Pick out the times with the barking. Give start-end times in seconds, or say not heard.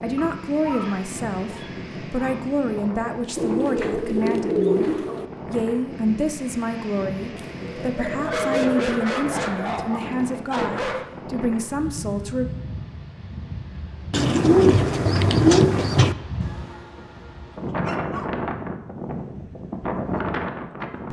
0.1-2.5, 8.2-11.1, 16.9-18.3.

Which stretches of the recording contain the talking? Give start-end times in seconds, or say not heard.
0.0-4.8, 5.5-12.4.